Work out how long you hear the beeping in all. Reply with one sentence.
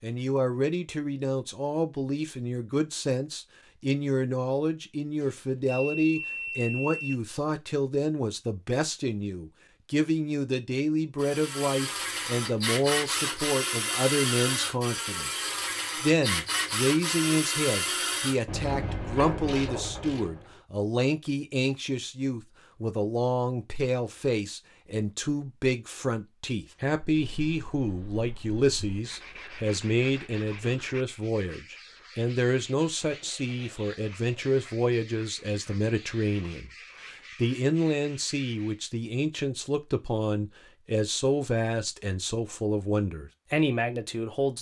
You can hear the beeping for 2 seconds altogether.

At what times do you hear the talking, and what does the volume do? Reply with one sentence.
The talking can be heard from 0.0 to 44.5 s, at a steady volume.